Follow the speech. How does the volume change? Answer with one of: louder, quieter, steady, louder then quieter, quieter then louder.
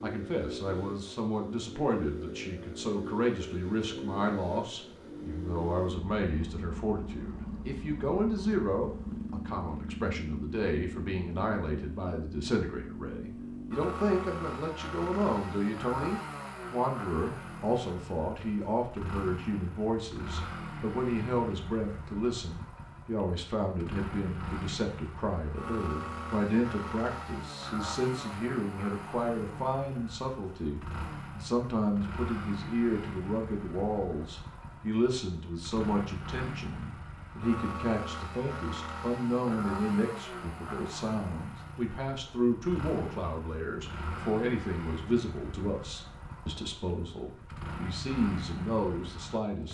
steady.